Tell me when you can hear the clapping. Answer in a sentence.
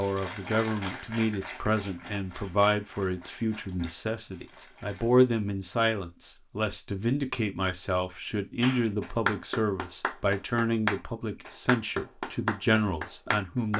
You can hear the clapping from 0.0 to 5.1 s and from 8.6 to 13.7 s.